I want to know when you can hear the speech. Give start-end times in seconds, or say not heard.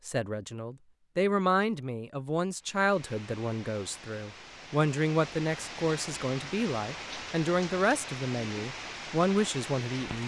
0.1-10.2.